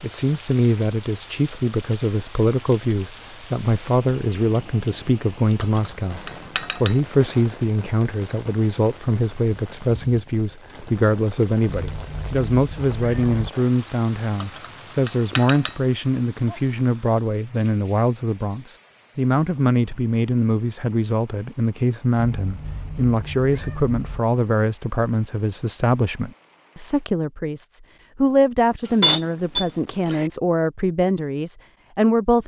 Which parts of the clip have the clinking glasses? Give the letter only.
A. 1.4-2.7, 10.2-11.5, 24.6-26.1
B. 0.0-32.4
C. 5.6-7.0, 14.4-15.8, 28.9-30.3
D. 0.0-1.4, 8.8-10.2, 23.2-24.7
C.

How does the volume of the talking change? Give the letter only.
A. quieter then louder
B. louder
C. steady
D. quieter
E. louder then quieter
C.